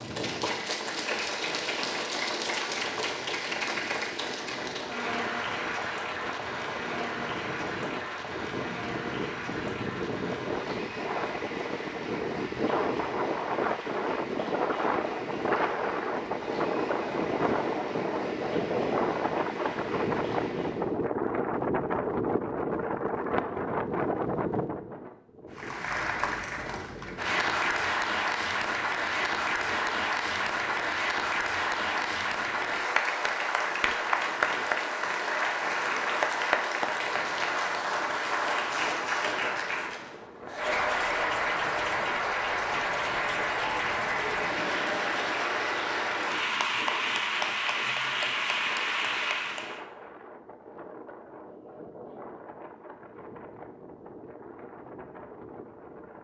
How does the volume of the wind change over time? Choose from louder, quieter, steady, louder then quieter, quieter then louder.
louder then quieter.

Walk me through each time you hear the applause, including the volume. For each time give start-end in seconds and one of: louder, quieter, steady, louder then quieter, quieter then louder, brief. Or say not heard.
0.0-20.9 quieter
25.5-49.8 steady.